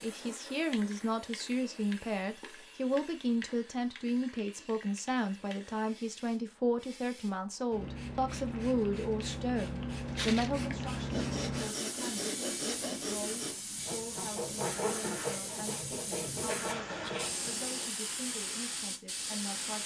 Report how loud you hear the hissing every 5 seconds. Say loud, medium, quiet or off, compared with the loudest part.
medium, loud, loud, loud.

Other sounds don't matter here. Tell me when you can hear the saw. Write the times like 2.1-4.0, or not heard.
10.1-17.3.